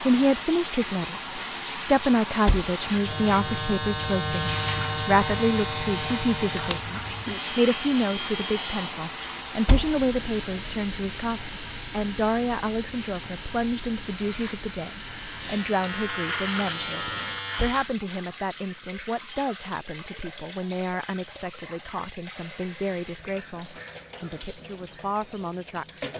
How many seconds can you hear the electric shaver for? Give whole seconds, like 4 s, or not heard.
10 s.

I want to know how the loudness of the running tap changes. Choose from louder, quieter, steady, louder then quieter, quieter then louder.
quieter.